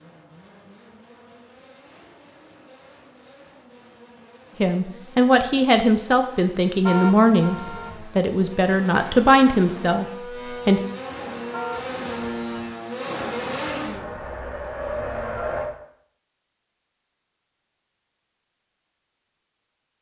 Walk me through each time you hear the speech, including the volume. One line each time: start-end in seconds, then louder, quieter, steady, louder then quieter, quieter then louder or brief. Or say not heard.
4.6-10.8 steady.